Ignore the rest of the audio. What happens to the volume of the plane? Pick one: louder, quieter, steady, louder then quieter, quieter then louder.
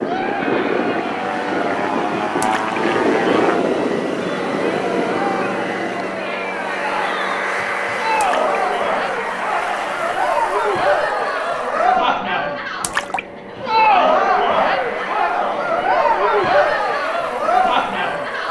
quieter.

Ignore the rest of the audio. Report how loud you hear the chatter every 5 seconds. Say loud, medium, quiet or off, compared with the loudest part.
medium, medium, loud, loud.